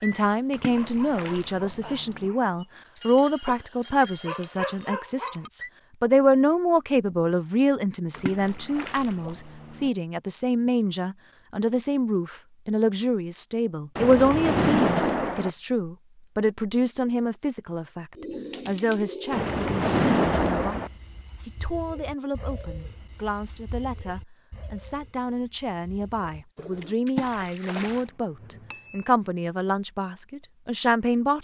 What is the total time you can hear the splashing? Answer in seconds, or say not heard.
8 s.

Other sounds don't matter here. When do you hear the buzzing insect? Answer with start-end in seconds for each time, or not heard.
not heard.